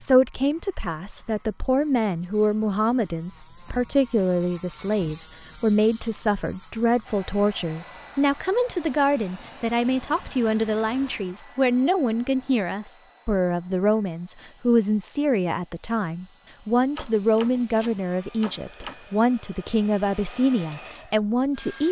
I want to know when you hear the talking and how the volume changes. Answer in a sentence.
You can hear the talking from 0.0 to 21.8 s, at a steady volume.